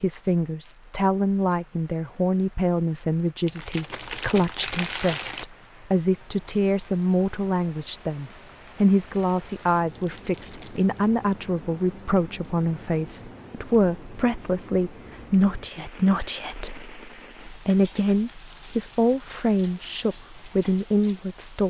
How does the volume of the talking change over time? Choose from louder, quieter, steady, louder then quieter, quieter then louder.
steady.